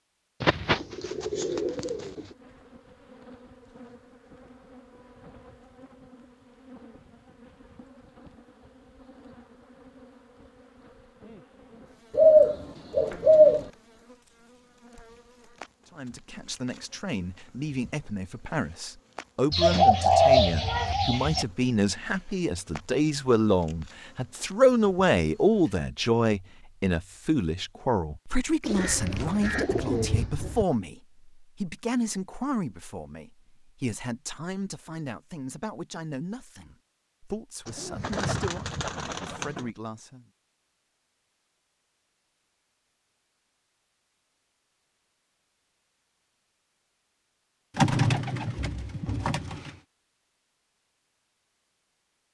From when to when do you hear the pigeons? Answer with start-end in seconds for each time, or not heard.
0.4-2.2, 12.1-13.7, 19.5-21.4, 28.6-30.6, 37.6-39.7, 47.8-49.7.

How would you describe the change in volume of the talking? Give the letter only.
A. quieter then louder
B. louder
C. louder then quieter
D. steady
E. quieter
C.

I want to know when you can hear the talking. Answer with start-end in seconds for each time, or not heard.
15.9-40.2.